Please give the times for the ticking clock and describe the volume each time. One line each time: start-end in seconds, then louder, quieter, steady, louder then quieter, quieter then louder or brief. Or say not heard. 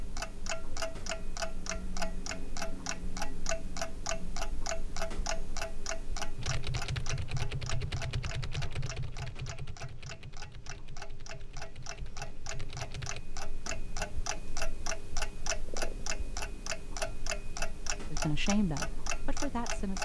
0.0-20.0 quieter then louder.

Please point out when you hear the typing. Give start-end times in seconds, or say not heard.
6.3-13.2.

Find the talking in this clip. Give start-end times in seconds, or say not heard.
18.1-20.0.